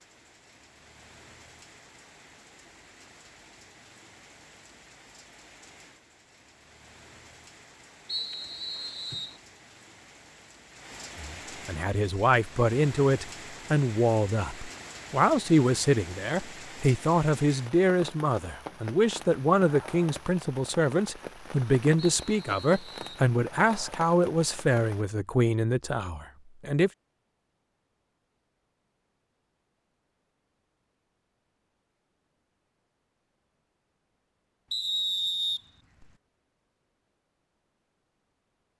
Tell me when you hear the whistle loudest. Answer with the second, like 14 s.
35 s.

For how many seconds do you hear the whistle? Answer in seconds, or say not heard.
4 s.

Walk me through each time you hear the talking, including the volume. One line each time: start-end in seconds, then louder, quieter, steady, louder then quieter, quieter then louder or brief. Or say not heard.
11.2-26.9 steady.